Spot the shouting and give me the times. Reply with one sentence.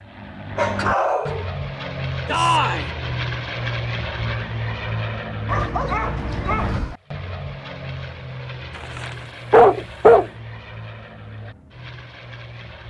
The shouting can be heard from 2.2 to 2.9 s.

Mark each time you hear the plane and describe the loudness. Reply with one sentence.
The plane can be heard from 0.0 to 12.8 s, getting quieter.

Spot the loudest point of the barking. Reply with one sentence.
The loudest moment of the barking is at 10 seconds.